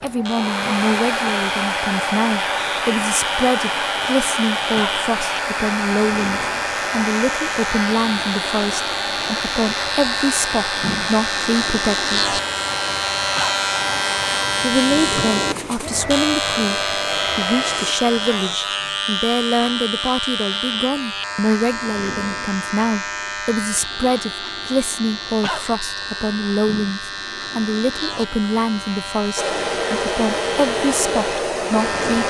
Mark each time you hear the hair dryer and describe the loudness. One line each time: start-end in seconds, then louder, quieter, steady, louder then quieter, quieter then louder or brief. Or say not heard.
0.0-17.9 quieter
29.4-32.2 brief.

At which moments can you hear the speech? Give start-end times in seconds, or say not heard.
0.0-12.4, 14.6-32.2.